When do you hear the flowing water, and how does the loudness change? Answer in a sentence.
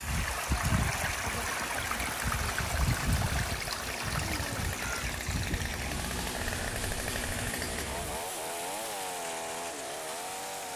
You can hear the flowing water from 0.0 to 10.7 s, getting quieter.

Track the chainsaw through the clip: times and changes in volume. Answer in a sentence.
The chainsaw can be heard from 0.0 to 10.7 s, getting louder.